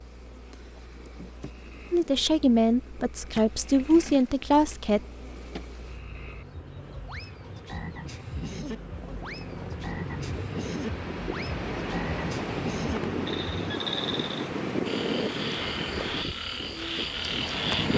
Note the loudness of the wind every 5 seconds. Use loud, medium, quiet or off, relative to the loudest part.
quiet, quiet, loud, loud.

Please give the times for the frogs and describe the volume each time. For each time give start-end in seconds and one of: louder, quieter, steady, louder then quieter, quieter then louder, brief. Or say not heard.
0.0-17.9 louder.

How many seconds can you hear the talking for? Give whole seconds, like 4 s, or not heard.
3 s.